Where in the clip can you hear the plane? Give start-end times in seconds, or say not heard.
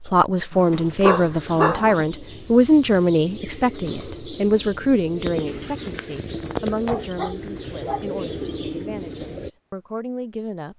not heard.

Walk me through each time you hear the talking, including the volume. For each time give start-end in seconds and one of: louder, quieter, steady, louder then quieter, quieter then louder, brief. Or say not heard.
0.0-10.7 quieter.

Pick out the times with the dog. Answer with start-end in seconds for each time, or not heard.
0.5-2.0, 6.8-8.6.